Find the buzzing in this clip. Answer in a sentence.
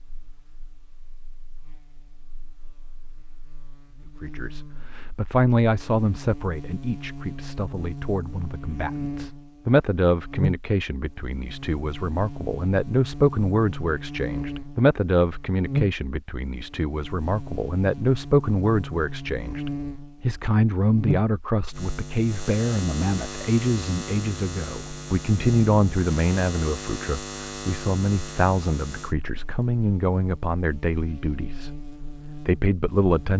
The buzzing can be heard from 0.0 to 33.3 s.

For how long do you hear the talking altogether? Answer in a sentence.
You can hear the talking for 28 seconds altogether.